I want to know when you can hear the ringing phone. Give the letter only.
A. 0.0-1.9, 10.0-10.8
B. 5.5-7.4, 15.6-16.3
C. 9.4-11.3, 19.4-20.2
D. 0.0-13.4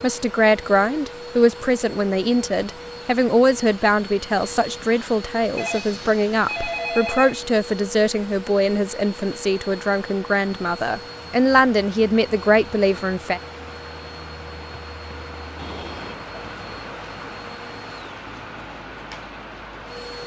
B.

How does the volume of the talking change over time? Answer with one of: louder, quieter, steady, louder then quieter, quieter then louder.
steady.